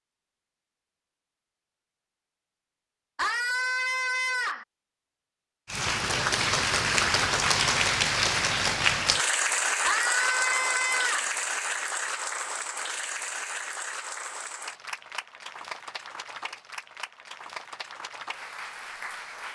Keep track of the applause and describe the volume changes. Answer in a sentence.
The loudness of the applause goes down.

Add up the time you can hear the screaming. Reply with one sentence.
You can hear the screaming for 3 seconds altogether.